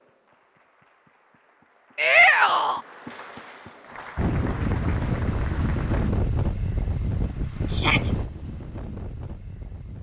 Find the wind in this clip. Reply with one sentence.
You can hear the wind from 4.2 to 9.9 s.